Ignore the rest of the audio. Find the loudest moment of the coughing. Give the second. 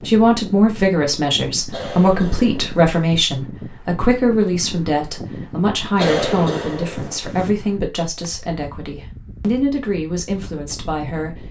6 s.